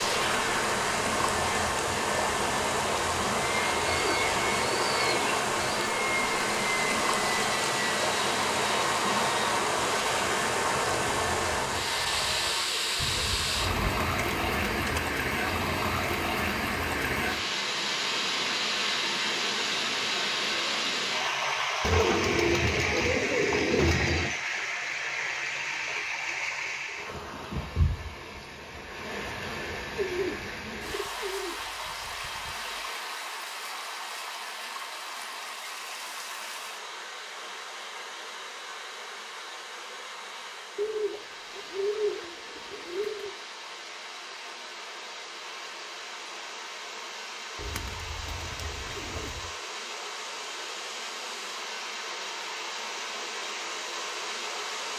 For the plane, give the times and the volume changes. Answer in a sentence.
You can hear the plane from 0.0 to 12.6 s, at a steady volume.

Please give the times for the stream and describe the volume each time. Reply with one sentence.
You can hear the stream from 0.0 to 54.9 s, getting quieter.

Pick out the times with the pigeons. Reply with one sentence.
You can hear the pigeons from 3.9 to 5.9 s, from 12.9 to 15.0 s, from 21.8 to 24.4 s, from 29.9 to 32.9 s, from 40.8 to 43.4 s and from 47.5 to 49.5 s.